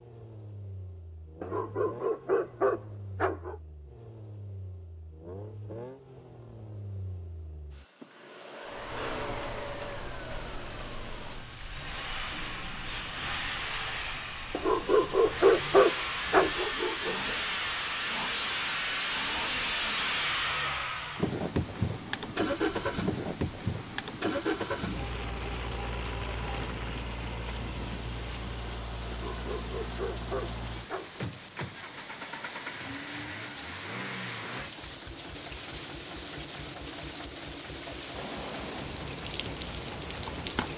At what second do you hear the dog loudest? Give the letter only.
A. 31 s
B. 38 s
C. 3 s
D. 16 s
D.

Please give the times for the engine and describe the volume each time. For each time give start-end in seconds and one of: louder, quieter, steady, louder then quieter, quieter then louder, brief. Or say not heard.
0.0-40.7 louder then quieter.